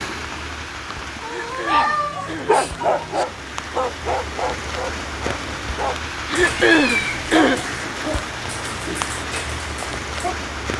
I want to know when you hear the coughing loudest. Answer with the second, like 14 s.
7 s.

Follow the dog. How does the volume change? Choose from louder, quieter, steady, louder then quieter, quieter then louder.
quieter.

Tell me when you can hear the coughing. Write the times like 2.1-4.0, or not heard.
1.2-2.6, 6.2-7.7.